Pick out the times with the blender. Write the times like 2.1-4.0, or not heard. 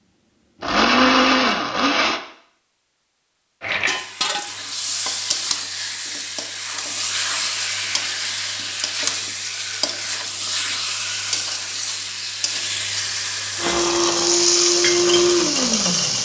0.4-2.2, 13.6-16.2.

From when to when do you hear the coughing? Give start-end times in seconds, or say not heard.
not heard.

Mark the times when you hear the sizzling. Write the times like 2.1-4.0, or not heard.
3.6-16.2.